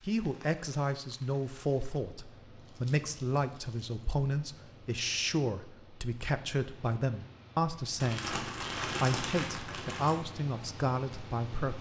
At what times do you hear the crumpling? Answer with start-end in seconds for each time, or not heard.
2.5-4.0, 8.0-10.2.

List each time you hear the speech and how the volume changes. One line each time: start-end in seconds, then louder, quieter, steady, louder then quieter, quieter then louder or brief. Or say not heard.
0.0-11.7 steady.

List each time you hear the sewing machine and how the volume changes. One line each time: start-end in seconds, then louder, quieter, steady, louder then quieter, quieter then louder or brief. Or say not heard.
not heard.